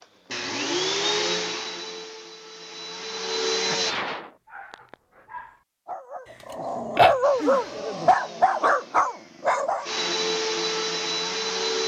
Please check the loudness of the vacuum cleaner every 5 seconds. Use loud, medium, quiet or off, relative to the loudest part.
loud, quiet, loud.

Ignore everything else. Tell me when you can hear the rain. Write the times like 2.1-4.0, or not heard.
not heard.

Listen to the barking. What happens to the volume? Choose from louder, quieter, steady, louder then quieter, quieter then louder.
louder.